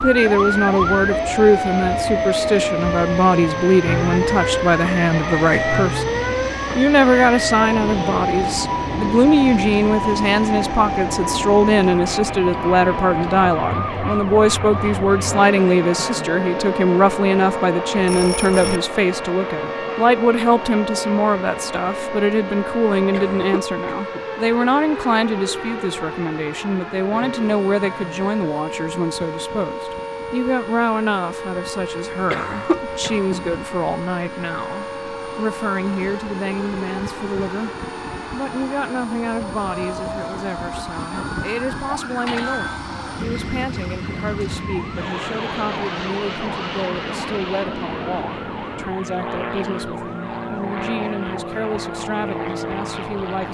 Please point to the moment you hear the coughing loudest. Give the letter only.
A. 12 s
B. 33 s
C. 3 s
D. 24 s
B.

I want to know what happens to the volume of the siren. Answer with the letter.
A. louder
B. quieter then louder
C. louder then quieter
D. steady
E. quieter
E.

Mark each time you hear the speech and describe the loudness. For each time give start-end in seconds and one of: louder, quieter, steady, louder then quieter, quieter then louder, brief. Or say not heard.
0.0-37.7 quieter
38.3-53.4 steady.